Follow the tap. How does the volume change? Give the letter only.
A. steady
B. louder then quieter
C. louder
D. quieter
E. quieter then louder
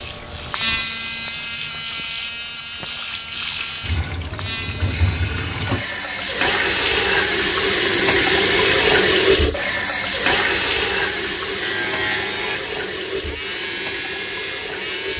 B.